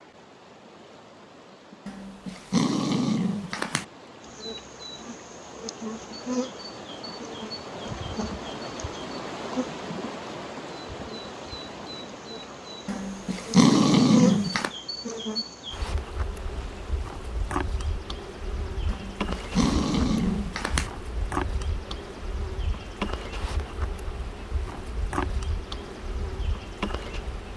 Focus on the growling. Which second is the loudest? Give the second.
14 s.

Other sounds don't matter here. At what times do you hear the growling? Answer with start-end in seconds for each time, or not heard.
1.9-3.9, 12.8-14.7, 18.9-20.9.